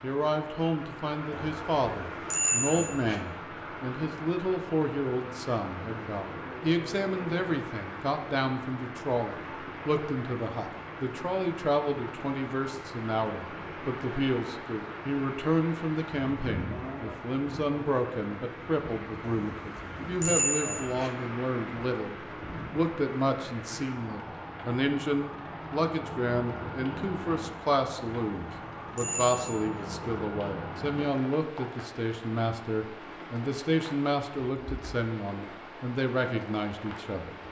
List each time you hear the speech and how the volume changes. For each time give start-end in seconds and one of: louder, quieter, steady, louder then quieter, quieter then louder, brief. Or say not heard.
0.0-37.4 steady.